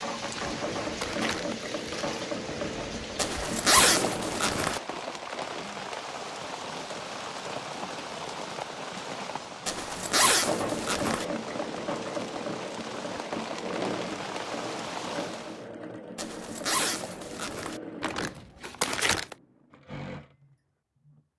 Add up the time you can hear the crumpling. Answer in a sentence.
You can hear the crumpling for 3 seconds altogether.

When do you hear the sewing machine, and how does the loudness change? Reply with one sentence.
The sewing machine can be heard from 0.0 to 4.5 s, at a steady volume; and from 10.4 to 21.2 s, getting quieter.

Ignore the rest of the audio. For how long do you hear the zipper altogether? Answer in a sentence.
The zipper can be heard for 5 seconds in total.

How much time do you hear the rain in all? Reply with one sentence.
The rain can be heard for 16 seconds in total.